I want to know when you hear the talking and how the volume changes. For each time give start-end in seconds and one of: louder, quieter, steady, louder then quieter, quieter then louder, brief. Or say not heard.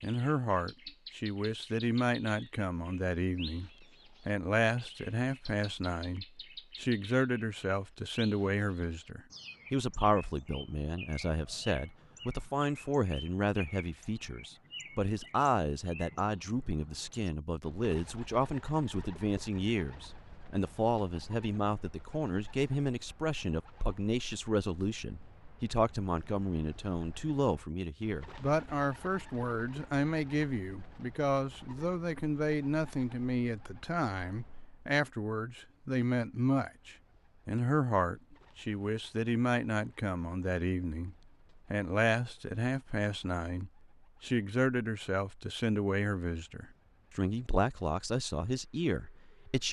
0.0-49.6 steady.